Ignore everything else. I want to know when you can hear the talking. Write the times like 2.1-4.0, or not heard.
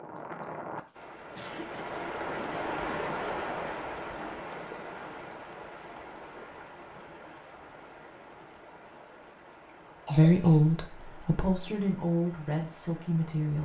10.1-13.6.